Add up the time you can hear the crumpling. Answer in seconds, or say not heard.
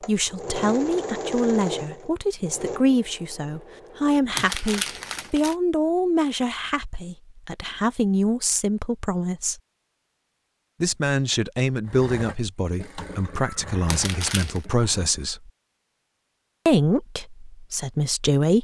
2 s.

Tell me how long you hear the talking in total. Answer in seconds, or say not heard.
16 s.